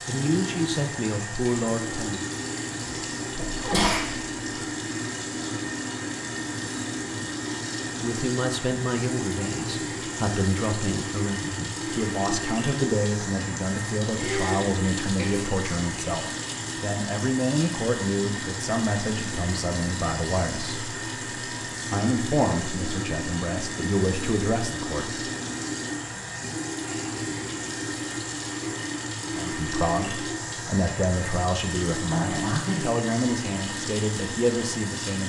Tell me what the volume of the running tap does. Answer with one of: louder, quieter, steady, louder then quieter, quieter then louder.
steady.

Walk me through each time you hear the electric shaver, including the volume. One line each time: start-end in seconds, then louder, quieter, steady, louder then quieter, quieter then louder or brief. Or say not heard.
not heard.